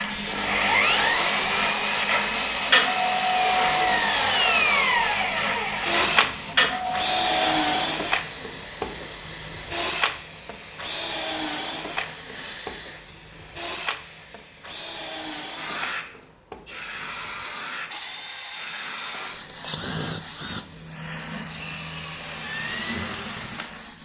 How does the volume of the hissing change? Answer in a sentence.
The volume of the hissing goes down.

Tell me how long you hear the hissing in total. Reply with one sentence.
The hissing can be heard for 24 seconds in total.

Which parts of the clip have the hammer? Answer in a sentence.
The hammer can't be heard in this clip.